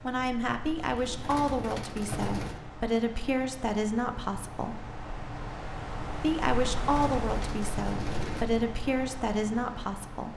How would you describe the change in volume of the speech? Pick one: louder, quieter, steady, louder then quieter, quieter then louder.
steady.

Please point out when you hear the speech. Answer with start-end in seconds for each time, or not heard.
0.0-4.9, 6.2-10.3.